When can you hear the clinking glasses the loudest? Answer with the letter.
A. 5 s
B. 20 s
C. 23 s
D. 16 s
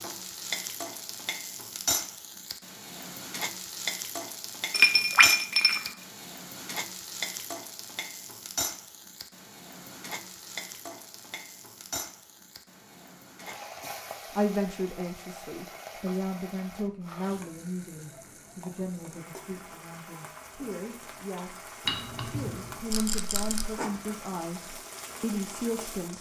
A.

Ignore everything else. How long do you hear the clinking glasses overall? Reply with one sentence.
You can hear the clinking glasses for 2 seconds altogether.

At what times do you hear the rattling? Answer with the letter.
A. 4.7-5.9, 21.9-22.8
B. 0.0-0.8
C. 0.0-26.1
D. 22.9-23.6
D.